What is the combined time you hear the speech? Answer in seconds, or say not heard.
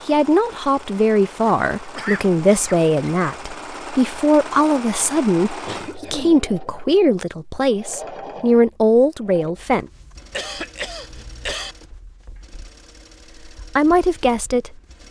11 s.